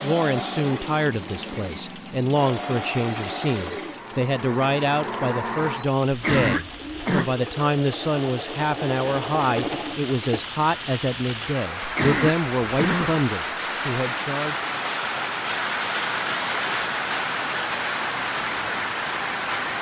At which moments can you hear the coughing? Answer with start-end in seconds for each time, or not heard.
6.1-7.3, 11.8-13.2.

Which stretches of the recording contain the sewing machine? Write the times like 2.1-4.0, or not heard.
0.0-10.6.